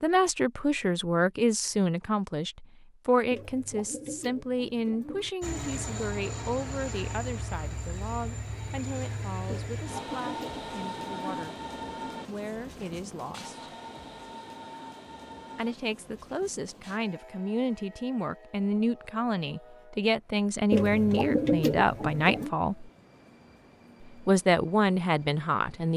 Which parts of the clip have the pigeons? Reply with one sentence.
You can hear the pigeons from 3.3 to 5.3 s, from 9.4 to 11.5 s and from 20.7 to 22.5 s.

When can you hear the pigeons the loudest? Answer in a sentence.
The volume of the pigeons peaks at 22 seconds.